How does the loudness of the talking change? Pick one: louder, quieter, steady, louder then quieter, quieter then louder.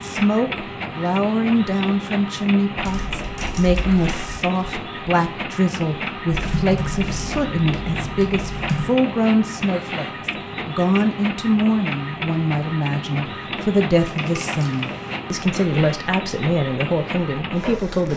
steady.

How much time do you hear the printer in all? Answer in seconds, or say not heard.
18 s.